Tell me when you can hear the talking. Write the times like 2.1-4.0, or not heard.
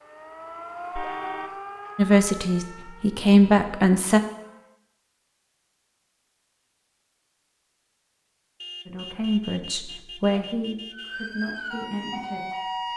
1.9-4.2, 8.8-12.9.